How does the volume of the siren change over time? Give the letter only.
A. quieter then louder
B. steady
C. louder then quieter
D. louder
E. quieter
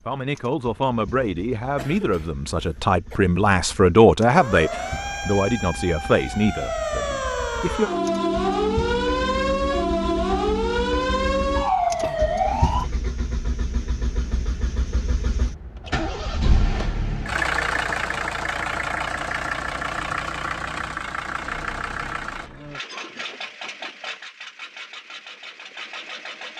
D.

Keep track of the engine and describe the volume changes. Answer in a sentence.
The loudness of the engine goes up, then down.